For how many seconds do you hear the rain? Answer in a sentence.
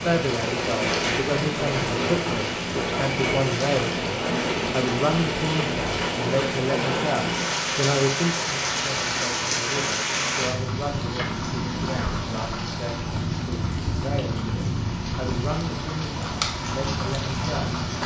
The rain can be heard for 18 seconds in total.